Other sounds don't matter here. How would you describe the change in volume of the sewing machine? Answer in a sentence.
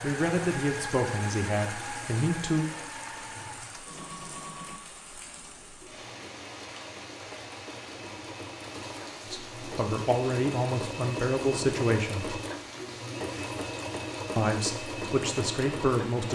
The loudness of the sewing machine goes down, then up.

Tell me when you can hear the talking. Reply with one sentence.
The talking can be heard from 0.0 to 2.6 s, from 9.2 to 12.3 s and from 14.3 to 16.3 s.